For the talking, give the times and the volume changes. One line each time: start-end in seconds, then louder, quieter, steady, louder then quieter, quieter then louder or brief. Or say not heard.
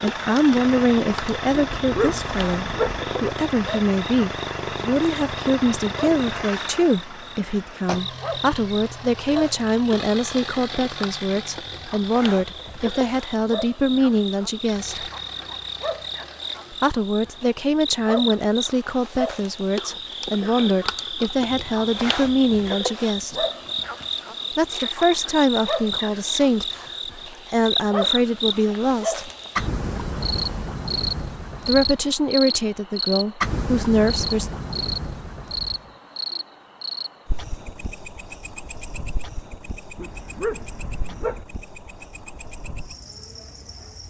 0.0-15.1 steady
16.7-23.4 steady
24.6-29.3 quieter then louder
31.6-34.5 brief.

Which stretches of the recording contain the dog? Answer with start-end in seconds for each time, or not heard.
1.8-3.0, 40.0-41.5.